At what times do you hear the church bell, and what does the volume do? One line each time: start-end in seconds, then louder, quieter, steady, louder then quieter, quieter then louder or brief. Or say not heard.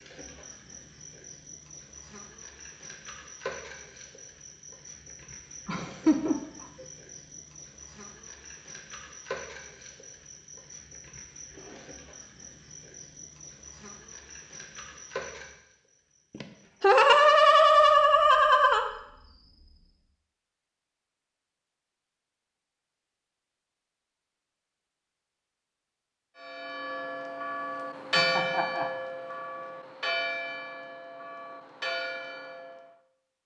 26.4-33.0 louder then quieter.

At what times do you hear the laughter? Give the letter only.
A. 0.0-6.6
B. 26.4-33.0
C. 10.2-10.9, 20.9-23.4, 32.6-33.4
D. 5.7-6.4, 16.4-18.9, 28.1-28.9
D.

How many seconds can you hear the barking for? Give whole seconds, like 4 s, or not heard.
not heard.